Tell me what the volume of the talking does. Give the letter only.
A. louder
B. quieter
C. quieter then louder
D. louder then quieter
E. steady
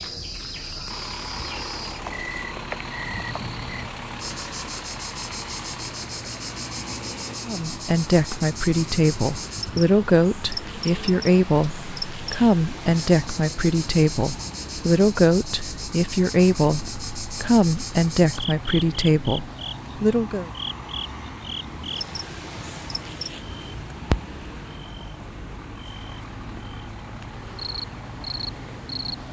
E.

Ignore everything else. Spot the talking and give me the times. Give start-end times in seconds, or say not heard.
7.5-20.5.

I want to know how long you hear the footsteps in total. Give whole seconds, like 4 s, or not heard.
not heard.